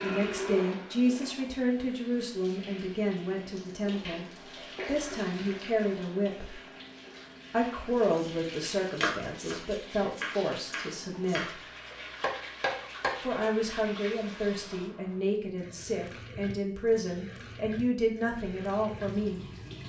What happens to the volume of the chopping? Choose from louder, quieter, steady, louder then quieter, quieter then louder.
quieter then louder.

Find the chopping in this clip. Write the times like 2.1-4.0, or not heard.
8.1-13.2.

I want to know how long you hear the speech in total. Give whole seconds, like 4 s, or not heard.
17 s.